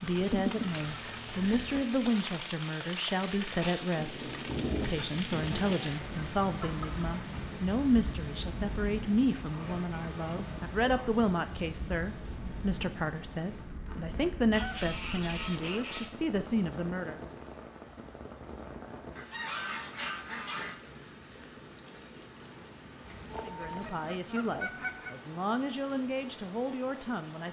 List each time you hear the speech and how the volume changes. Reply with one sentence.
You can hear the speech from 0.0 to 17.2 s, at a steady volume; and from 23.4 to 27.4 s, at a steady volume.